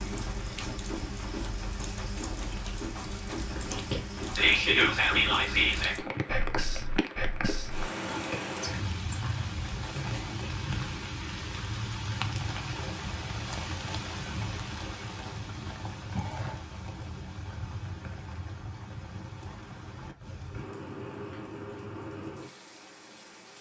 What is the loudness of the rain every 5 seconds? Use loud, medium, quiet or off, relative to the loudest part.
loud, loud, loud, medium, medium.